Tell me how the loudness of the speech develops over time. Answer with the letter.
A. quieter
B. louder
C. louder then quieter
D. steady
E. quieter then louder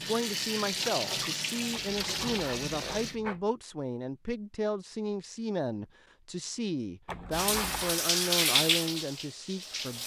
D.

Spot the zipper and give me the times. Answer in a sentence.
The zipper can be heard from 1.7 to 3.5 s and from 7.0 to 8.0 s.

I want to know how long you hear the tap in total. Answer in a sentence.
The tap can be heard for 6 seconds in total.